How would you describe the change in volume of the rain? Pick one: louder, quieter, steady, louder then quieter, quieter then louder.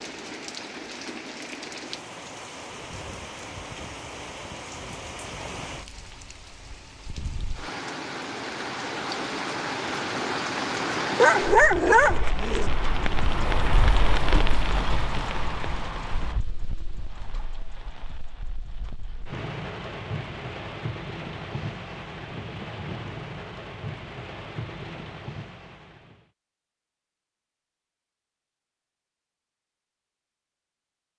louder then quieter.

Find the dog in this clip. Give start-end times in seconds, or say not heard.
11.2-12.7.